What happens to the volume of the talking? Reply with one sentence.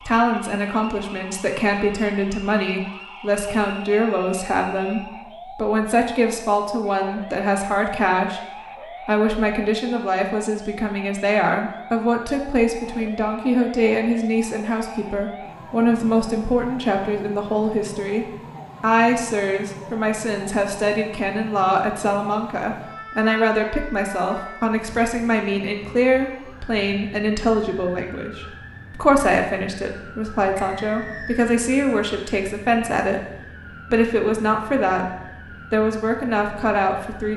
The loudness of the talking stays about the same.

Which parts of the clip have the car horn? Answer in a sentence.
You can't hear the car horn here.